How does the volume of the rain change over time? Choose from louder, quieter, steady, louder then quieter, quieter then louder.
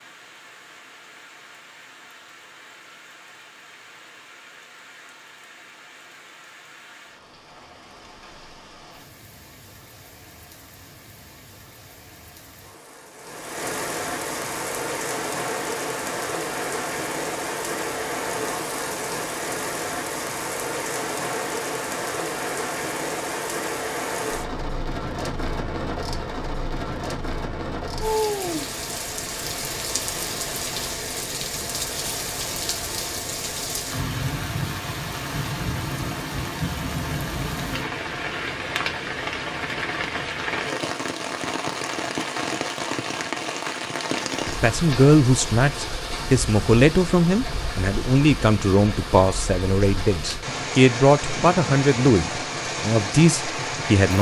louder.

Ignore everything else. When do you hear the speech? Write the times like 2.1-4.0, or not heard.
44.5-54.1.